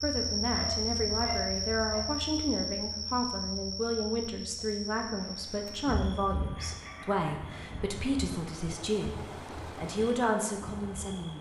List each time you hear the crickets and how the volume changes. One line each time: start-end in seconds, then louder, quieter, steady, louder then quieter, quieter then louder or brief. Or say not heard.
0.0-11.3 quieter.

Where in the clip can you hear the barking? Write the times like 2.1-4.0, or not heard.
0.5-2.1, 5.8-7.9.